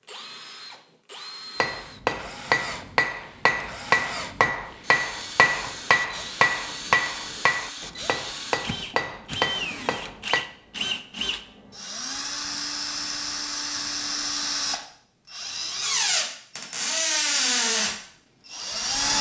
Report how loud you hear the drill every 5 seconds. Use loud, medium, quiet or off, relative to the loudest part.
quiet, medium, medium, loud.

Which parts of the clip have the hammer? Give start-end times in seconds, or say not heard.
1.6-10.4.